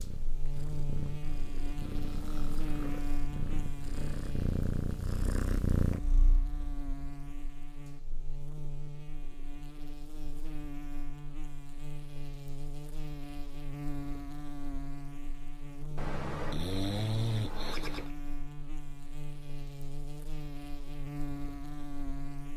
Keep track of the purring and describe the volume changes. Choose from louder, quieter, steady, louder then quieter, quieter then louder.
louder.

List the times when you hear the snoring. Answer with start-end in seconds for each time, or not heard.
1.9-3.0, 15.9-18.1.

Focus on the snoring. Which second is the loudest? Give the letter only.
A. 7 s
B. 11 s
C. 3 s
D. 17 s
D.